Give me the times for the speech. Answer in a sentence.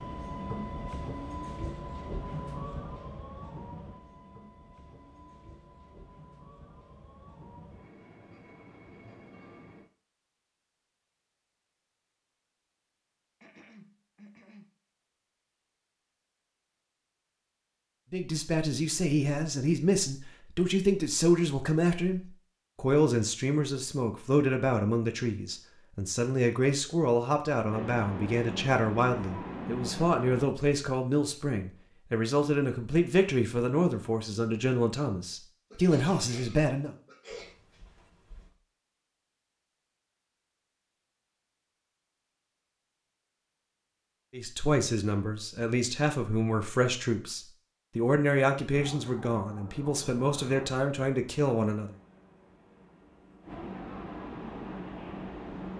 You can hear the speech from 18.1 to 37.0 s and from 44.3 to 52.0 s.